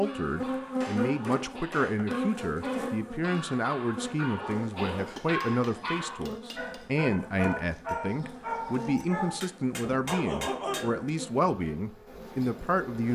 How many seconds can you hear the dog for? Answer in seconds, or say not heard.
11 s.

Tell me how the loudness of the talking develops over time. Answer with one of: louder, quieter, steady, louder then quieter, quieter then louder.
steady.